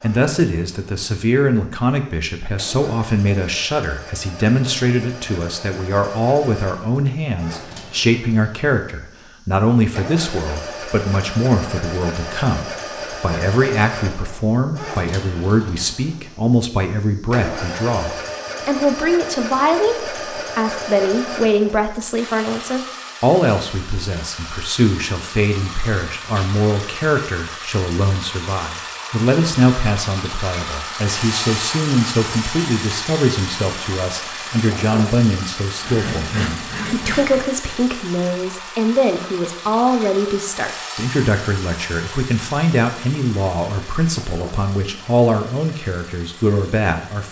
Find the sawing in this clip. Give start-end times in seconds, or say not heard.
35.8-37.5.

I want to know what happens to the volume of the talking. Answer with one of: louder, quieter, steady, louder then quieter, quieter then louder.
steady.